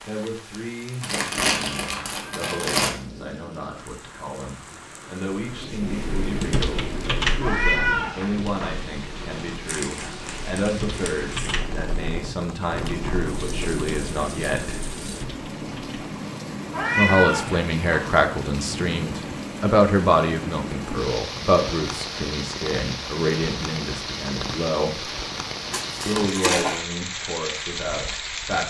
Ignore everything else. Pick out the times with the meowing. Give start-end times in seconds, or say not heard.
7.3-8.8, 16.7-18.1.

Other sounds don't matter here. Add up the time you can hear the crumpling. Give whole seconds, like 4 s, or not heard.
5 s.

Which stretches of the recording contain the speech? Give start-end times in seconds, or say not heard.
0.1-14.9, 16.9-25.1, 26.1-28.6.